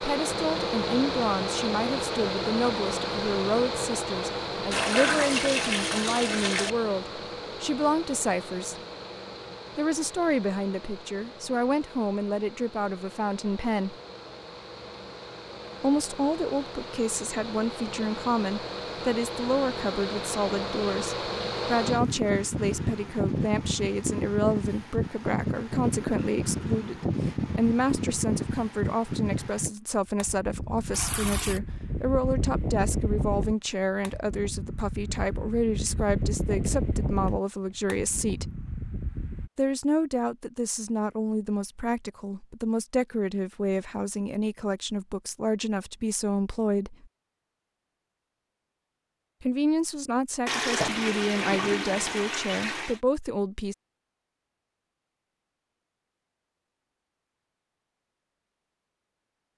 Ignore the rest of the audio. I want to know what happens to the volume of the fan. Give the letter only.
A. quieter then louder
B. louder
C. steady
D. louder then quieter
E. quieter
A.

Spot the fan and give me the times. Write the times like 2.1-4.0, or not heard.
0.0-39.5.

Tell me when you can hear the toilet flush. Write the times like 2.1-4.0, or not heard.
4.7-6.7, 30.9-31.6, 50.5-53.0.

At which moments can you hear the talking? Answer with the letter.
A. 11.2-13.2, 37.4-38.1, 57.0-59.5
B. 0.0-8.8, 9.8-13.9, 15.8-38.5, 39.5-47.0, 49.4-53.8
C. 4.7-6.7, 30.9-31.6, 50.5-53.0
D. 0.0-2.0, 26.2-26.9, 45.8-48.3
B.